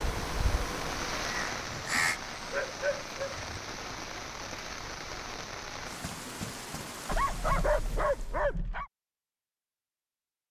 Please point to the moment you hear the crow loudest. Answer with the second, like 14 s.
2 s.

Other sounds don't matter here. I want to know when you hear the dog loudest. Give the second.
8 s.